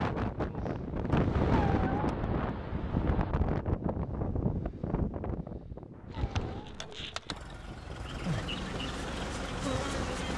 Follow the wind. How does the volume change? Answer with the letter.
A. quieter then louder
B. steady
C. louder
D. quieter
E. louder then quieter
D.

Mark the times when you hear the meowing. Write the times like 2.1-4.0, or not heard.
1.5-3.4, 5.9-6.9.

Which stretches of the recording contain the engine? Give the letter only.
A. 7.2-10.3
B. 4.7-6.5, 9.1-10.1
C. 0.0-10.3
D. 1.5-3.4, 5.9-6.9
A.